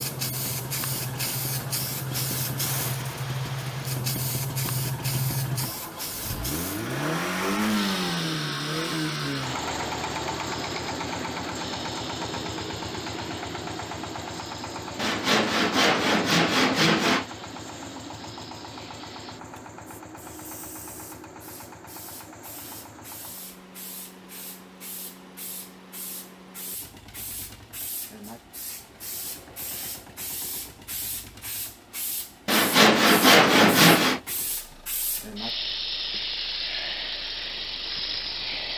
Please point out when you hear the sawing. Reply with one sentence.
The sawing can be heard from 14.9 to 17.2 s and from 32.5 to 34.2 s.